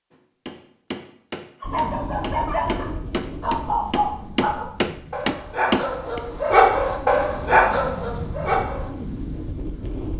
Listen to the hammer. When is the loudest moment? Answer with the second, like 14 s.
6 s.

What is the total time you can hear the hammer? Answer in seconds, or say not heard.
6 s.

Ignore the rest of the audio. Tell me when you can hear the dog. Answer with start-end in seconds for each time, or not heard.
1.6-8.9.